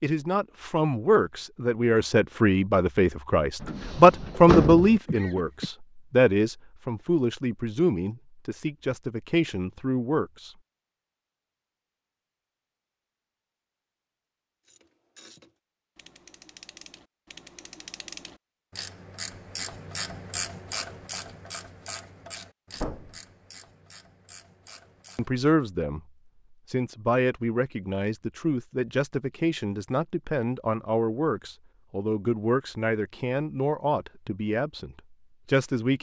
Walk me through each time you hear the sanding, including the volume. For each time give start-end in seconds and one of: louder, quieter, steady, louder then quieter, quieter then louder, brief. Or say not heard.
not heard.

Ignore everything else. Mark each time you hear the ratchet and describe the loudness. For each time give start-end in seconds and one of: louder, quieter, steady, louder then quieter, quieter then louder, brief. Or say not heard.
14.7-25.4 louder then quieter.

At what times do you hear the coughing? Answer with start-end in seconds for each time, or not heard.
5.0-5.7.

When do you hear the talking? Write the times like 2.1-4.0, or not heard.
0.0-10.5, 25.1-26.0, 26.7-35.9.